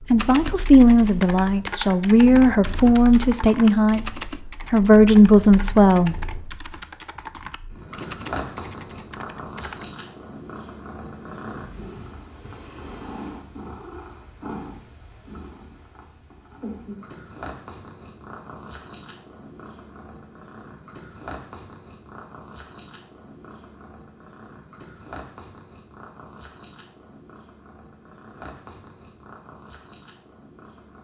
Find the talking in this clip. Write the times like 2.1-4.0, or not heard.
0.1-6.3.